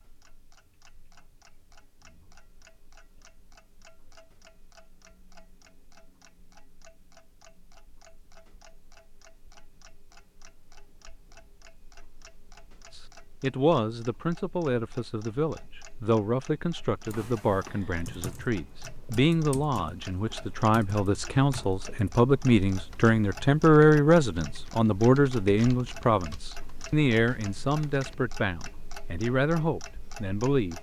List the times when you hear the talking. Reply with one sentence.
The talking can be heard from 12.9 to 30.7 s.